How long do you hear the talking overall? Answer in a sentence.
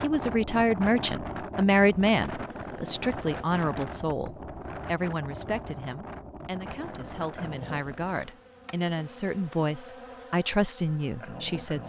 The talking can be heard for 12 seconds in total.